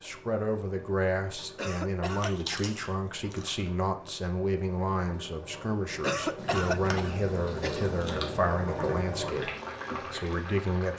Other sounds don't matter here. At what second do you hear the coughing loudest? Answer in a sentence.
The volume of the coughing peaks at 6 seconds.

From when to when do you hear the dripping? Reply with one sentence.
You can't hear the dripping here.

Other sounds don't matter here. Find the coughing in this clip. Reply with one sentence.
You can hear the coughing from 1.6 to 2.6 s and from 6.0 to 7.8 s.